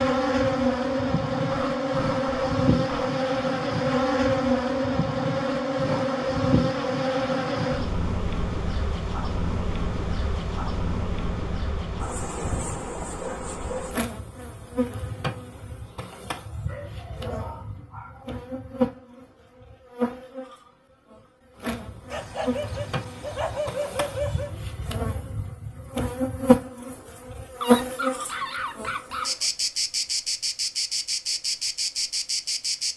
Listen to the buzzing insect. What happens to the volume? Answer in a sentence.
The loudness of the buzzing insect goes down, then up.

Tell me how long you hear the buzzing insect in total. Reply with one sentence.
You can hear the buzzing insect for 33 seconds altogether.